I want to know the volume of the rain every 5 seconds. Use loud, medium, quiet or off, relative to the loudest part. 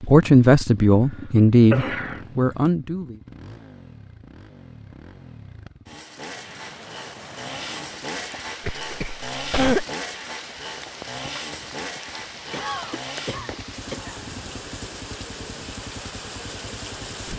off, medium, loud, loud.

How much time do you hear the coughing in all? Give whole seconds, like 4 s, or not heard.
3 s.